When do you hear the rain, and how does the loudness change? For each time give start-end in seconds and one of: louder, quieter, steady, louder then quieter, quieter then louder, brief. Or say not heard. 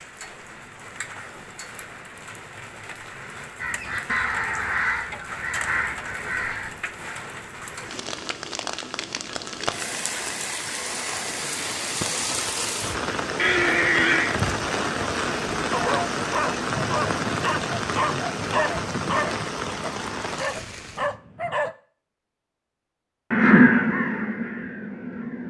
0.0-21.1 louder.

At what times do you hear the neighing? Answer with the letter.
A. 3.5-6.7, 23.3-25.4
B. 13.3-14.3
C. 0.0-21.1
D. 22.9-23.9
B.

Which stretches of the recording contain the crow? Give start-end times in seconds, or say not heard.
3.5-6.7, 23.3-25.4.